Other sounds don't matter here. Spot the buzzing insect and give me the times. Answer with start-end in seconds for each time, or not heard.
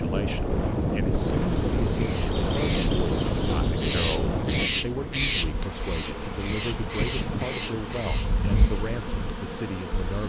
0.0-10.2.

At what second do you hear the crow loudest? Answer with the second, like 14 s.
5 s.